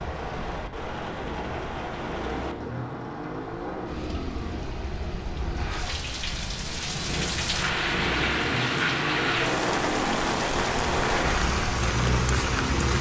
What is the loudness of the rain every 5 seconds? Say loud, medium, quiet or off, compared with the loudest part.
medium, loud, loud.